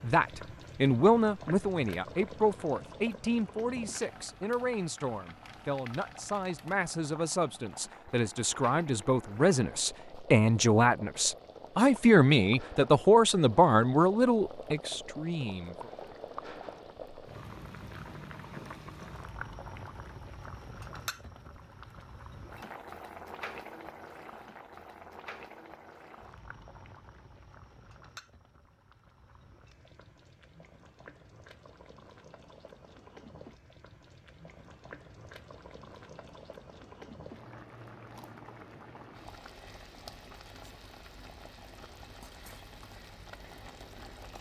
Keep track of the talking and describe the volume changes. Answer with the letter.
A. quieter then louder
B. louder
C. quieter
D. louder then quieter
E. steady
A.